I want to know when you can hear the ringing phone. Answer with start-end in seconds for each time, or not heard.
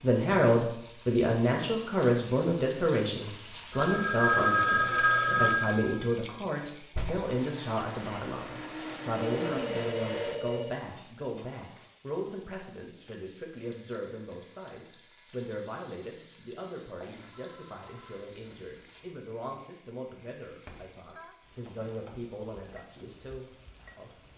3.7-6.2, 9.2-10.8, 17.0-19.1.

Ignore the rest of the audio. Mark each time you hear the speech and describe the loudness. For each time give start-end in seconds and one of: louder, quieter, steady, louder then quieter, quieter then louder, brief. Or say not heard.
0.0-24.1 quieter.